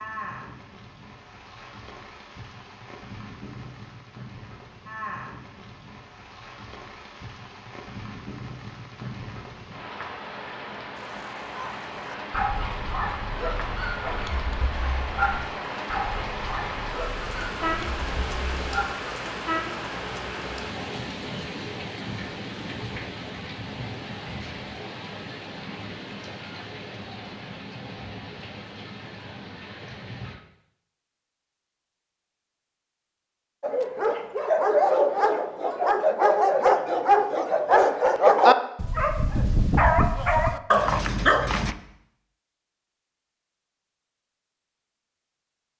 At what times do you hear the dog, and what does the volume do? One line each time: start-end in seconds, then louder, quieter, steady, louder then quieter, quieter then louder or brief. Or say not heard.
11.0-18.9 quieter
33.6-41.8 steady.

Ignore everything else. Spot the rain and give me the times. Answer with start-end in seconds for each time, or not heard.
0.0-30.4.